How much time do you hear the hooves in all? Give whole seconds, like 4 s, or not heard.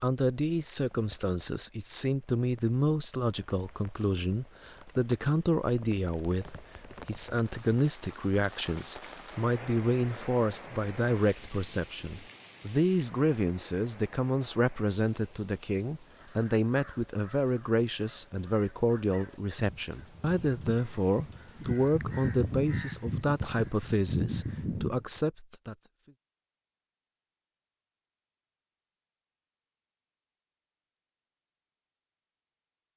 not heard.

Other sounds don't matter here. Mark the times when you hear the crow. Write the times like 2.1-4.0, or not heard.
16.1-25.2.